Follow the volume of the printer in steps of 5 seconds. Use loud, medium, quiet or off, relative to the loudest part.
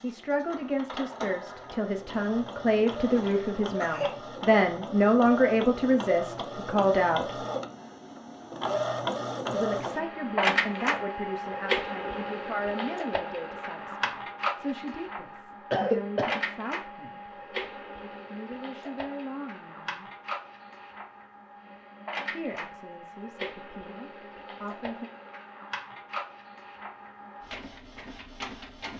medium, loud, loud, medium, medium, medium.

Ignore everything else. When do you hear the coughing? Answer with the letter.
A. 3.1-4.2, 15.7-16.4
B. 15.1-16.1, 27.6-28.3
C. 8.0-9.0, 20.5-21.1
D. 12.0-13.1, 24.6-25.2
A.